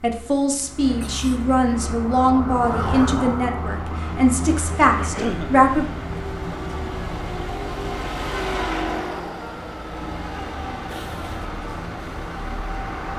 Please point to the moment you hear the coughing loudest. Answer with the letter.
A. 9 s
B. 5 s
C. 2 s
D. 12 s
B.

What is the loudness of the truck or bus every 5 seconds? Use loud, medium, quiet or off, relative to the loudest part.
medium, loud, loud.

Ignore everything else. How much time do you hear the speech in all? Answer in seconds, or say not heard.
6 s.